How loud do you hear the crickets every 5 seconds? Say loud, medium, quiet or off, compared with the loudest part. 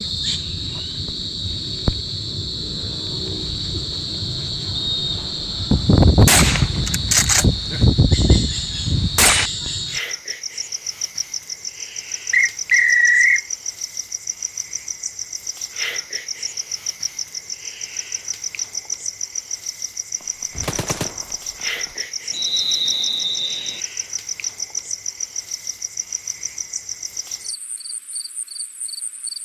loud, loud, loud, loud, loud, medium.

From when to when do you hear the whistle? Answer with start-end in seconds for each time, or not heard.
4.7-5.7, 12.3-13.4, 22.3-23.8.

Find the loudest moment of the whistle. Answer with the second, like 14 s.
13 s.